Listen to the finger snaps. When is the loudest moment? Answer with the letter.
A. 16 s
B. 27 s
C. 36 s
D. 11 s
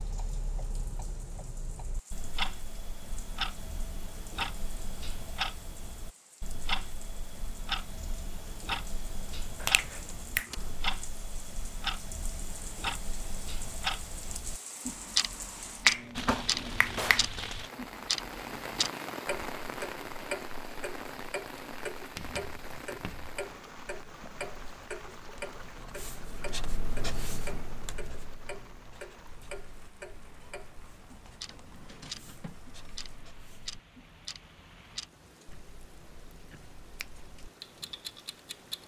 A.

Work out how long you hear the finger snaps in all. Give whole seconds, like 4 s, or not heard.
2 s.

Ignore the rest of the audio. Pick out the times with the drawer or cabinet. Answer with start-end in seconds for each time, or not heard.
10.1-10.6, 16.5-17.3, 31.4-32.5.